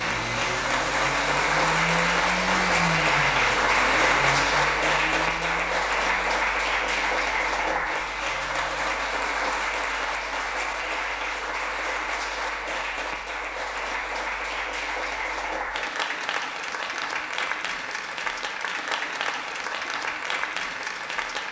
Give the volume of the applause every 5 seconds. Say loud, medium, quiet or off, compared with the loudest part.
loud, loud, medium, medium, medium.